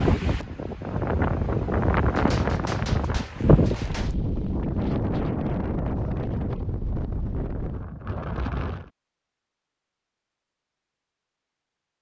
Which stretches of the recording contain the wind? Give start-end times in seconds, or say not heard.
0.0-8.9.